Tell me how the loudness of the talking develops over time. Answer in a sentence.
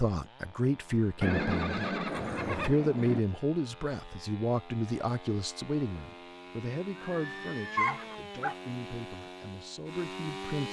The loudness of the talking goes down.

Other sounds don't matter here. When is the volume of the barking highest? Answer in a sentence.
The loudest moment of the barking is at 8 seconds.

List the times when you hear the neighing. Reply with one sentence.
You can hear the neighing from 1.2 to 3.2 s and from 7.0 to 8.2 s.